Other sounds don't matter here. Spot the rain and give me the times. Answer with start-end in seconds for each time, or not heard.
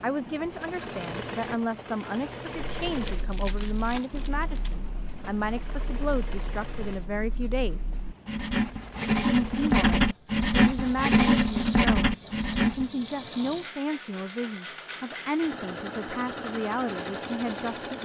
not heard.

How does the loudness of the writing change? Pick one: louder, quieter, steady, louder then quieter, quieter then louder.
louder.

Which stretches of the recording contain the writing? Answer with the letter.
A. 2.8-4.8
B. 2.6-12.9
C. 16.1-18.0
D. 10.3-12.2
B.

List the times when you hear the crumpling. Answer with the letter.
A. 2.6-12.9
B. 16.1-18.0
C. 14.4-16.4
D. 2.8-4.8
D.